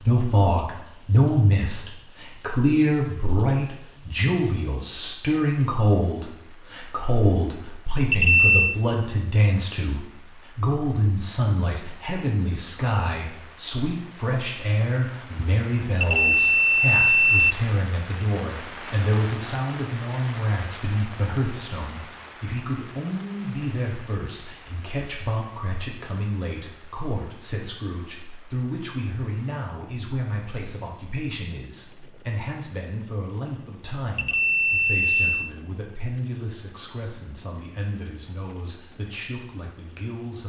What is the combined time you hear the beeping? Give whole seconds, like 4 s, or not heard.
3 s.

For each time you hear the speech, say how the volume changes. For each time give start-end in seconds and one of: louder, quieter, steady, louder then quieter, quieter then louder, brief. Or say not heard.
0.0-40.4 quieter.